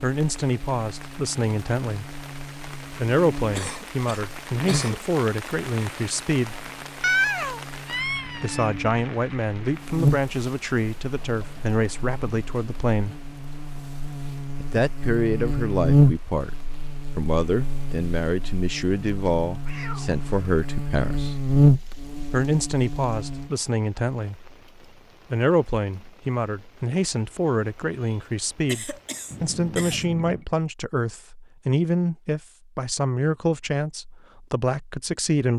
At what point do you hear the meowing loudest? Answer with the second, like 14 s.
7 s.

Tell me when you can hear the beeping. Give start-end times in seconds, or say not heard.
not heard.